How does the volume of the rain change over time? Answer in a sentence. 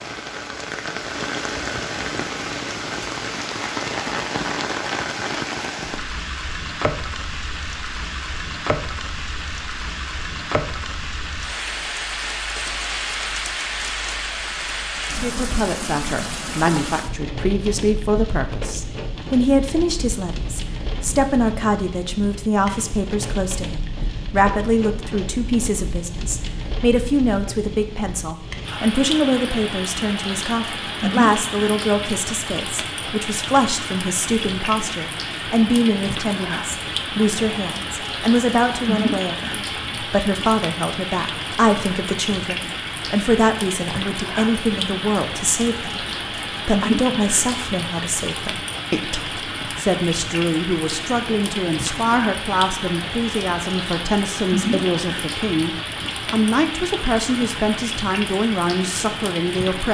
The loudness of the rain stays about the same.